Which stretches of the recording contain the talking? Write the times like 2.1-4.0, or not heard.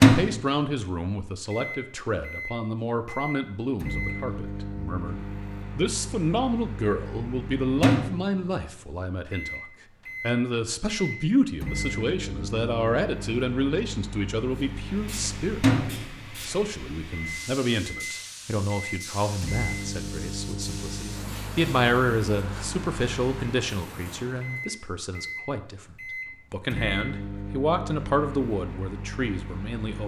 0.0-9.6, 10.2-15.7, 16.4-30.0.